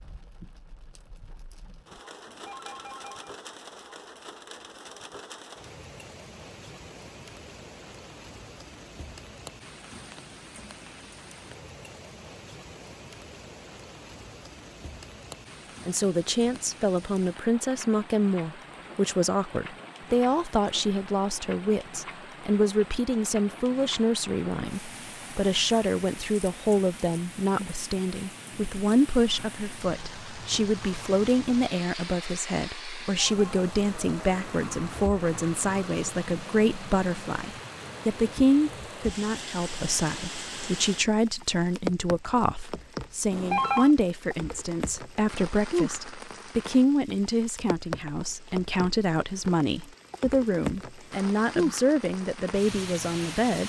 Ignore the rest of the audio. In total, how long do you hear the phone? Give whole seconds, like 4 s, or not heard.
2 s.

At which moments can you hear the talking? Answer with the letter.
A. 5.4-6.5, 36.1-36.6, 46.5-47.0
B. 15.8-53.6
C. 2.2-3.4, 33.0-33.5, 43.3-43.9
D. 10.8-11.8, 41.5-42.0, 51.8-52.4
B.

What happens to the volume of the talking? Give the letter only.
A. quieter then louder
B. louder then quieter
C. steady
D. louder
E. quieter
C.